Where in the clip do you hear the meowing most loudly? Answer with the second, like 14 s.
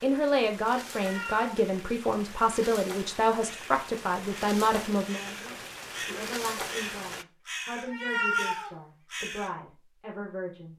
8 s.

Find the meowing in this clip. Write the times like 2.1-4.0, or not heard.
0.9-1.5, 7.9-8.8.